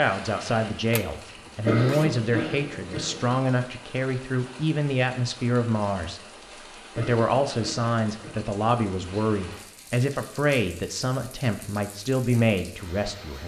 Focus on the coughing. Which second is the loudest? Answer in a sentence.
The loudest moment of the coughing is at 2 seconds.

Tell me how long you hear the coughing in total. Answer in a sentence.
The coughing can be heard for 3 seconds in total.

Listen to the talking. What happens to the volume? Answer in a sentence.
The volume of the talking stays about the same.